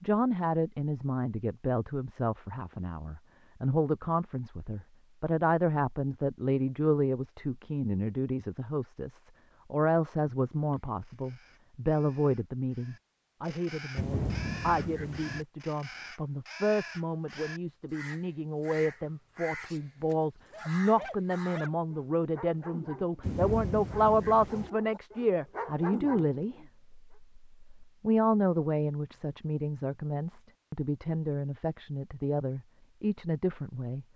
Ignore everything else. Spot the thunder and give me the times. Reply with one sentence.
You can hear the thunder from 13.9 to 15.4 s and from 23.2 to 24.7 s.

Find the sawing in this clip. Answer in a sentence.
The sawing can't be heard in this clip.